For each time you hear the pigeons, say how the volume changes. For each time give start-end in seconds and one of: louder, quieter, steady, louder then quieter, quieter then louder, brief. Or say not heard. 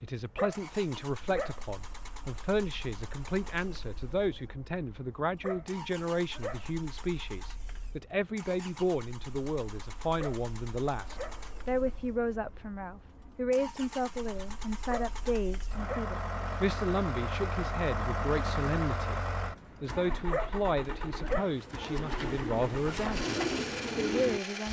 19.4-24.4 louder.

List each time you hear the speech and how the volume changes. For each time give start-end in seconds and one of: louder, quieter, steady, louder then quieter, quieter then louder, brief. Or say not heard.
0.0-19.2 steady
19.8-24.6 steady.